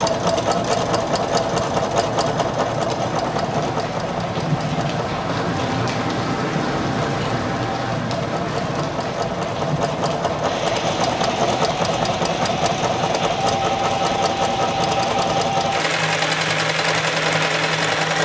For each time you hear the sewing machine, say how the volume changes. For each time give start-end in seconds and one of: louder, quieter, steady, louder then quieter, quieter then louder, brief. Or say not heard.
0.0-18.2 quieter then louder.